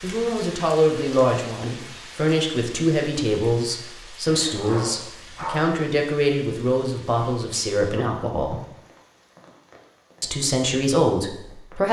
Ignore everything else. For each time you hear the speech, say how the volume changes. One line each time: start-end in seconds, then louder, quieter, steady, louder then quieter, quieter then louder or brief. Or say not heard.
0.0-8.6 steady
10.2-11.8 brief.